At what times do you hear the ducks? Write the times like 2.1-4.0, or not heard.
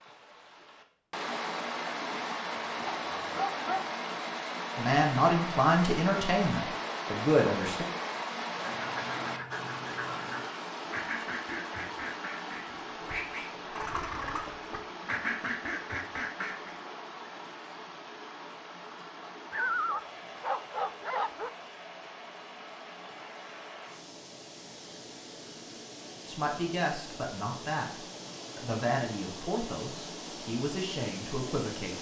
8.6-16.8.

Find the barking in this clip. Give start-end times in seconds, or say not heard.
3.0-4.0, 19.5-21.5.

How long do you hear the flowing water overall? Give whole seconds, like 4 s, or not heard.
32 s.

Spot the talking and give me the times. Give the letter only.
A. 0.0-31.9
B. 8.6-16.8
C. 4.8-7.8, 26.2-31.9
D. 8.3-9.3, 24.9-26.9
C.